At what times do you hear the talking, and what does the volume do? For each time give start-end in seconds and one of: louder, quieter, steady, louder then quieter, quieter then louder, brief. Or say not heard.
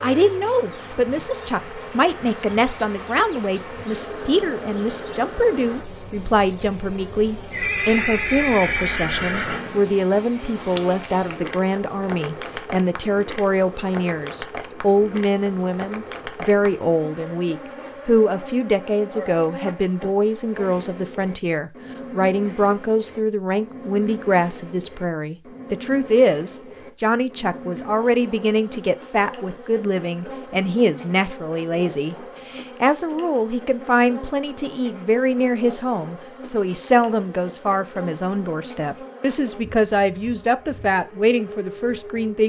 0.0-42.4 steady.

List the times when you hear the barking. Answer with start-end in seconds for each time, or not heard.
not heard.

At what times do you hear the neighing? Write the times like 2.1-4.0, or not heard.
7.5-9.9.